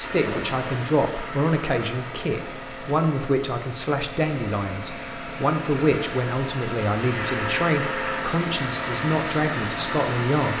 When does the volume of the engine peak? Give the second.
8 s.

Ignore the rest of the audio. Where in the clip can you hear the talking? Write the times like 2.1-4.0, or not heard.
0.0-10.5.